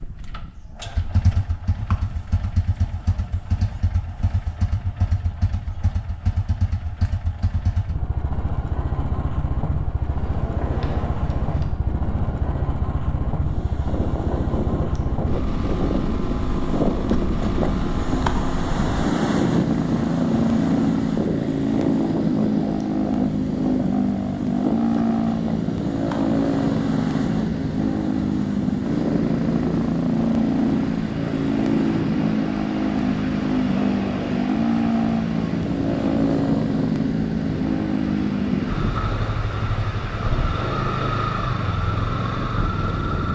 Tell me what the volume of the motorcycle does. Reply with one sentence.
The volume of the motorcycle goes up.